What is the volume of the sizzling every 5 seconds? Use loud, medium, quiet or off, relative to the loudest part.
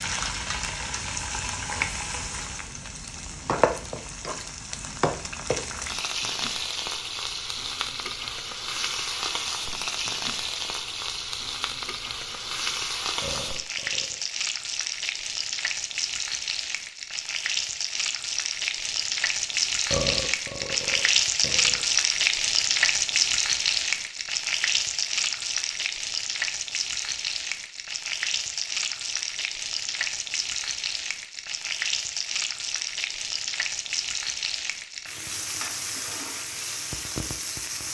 medium, medium, medium, medium, loud, medium, medium, medium.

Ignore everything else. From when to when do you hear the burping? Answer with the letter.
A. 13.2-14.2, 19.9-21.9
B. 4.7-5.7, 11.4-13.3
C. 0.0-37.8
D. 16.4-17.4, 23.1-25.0
A.